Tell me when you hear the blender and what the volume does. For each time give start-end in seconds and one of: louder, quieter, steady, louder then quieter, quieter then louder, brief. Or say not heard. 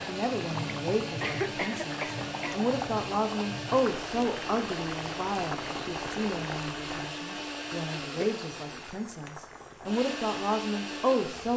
0.0-11.5 steady.